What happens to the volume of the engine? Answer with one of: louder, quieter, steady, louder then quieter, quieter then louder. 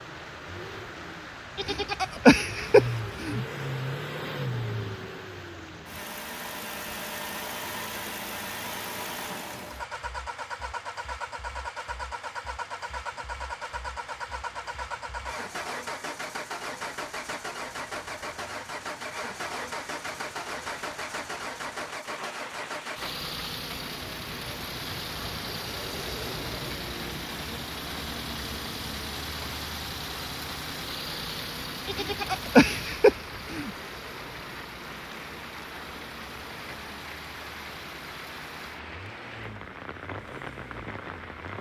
quieter.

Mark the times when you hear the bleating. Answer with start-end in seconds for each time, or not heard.
1.6-3.4, 31.9-33.7.